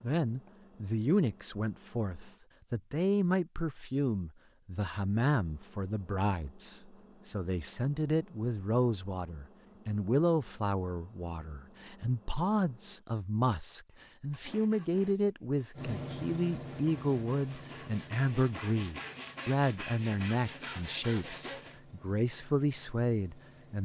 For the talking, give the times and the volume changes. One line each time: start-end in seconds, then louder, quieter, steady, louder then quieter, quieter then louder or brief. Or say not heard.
0.0-23.8 steady.